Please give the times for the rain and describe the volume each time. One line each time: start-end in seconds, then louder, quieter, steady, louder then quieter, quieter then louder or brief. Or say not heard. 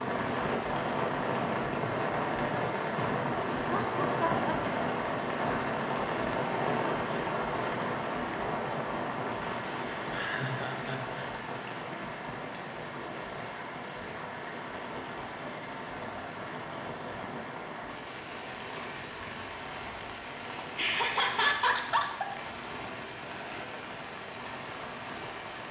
0.0-25.6 quieter.